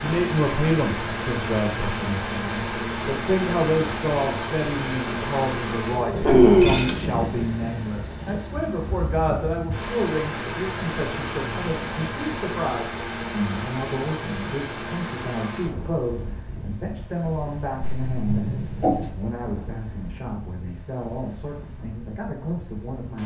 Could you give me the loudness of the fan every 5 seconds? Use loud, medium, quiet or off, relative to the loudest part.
loud, loud, loud, medium, quiet.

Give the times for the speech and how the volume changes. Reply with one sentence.
The speech can be heard from 0.0 to 23.2 s, getting quieter.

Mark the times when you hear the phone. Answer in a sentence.
The phone can be heard from 6.2 to 6.9 s and from 17.8 to 19.1 s.